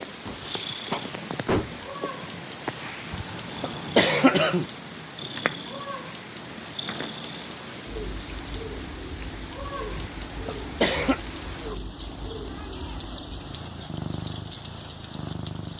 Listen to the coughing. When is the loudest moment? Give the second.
4 s.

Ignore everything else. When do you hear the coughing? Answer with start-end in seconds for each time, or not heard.
3.1-4.7, 9.9-11.2.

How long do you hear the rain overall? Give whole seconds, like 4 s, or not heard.
16 s.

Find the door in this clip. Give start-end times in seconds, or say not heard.
0.2-1.9.